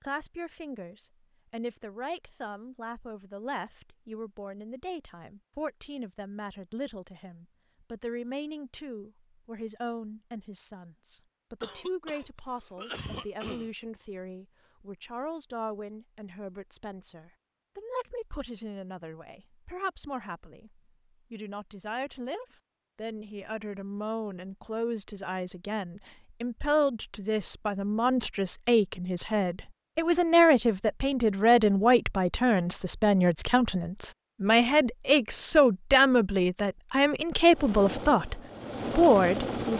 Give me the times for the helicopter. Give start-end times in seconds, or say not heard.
37.5-39.7.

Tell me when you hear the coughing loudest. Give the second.
13 s.